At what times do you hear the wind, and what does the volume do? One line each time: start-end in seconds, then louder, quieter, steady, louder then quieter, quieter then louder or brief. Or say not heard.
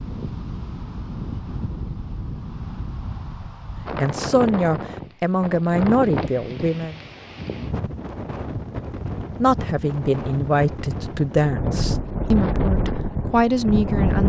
0.0-14.2 louder.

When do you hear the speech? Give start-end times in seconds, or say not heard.
4.0-7.0, 9.4-14.2.